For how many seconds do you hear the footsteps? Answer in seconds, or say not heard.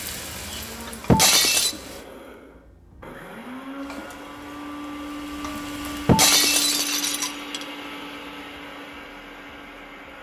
not heard.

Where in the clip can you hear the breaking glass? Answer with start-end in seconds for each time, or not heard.
1.1-1.8, 6.0-7.7.